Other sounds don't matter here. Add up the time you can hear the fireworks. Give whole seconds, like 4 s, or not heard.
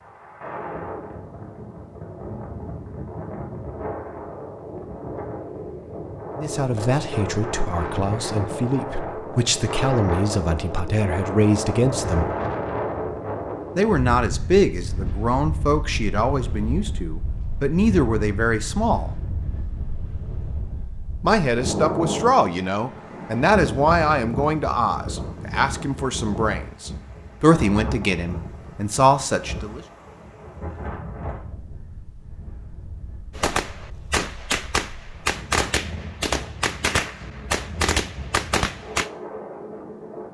6 s.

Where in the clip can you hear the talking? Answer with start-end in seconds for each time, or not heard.
6.3-12.3, 13.8-19.1, 21.2-29.8.